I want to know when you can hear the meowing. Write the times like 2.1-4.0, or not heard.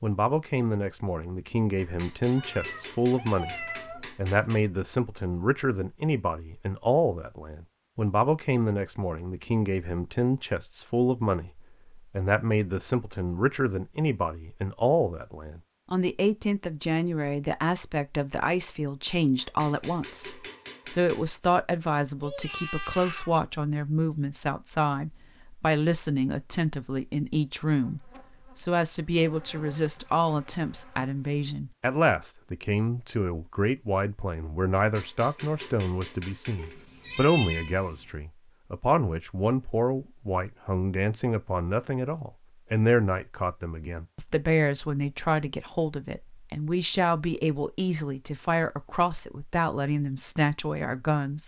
2.3-4.0, 22.2-23.4, 36.5-38.1.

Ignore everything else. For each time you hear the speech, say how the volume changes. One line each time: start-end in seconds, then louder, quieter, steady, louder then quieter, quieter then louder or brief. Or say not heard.
0.0-51.4 steady.